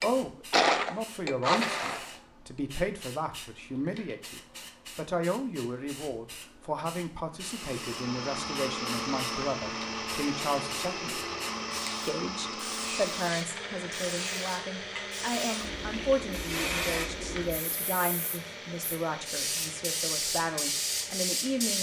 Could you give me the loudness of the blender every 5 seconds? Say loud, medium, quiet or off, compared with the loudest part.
loud, medium, medium, quiet, quiet.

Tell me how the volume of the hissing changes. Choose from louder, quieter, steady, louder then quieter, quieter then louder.
louder.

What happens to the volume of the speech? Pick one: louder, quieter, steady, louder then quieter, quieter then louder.
steady.